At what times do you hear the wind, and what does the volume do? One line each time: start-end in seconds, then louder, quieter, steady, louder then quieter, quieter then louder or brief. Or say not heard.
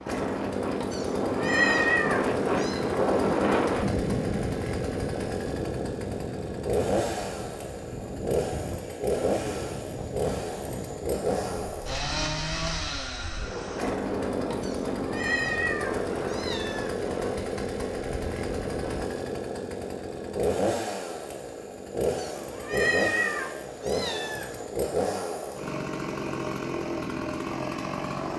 0.0-19.1 quieter.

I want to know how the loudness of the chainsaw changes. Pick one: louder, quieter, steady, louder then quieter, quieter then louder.
steady.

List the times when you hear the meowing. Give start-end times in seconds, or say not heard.
0.9-2.8, 14.6-16.9, 22.1-24.6.